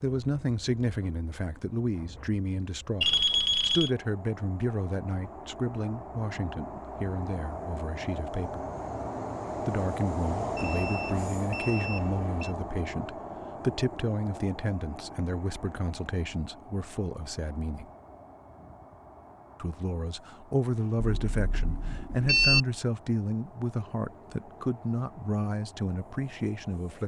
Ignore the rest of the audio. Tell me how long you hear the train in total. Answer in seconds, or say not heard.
27 s.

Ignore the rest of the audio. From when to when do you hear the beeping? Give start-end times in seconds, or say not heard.
3.0-3.9, 10.6-12.6, 20.9-22.6.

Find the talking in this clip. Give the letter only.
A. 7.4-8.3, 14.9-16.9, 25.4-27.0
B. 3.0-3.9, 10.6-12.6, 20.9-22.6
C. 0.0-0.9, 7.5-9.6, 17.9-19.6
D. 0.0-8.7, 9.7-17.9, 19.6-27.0
D.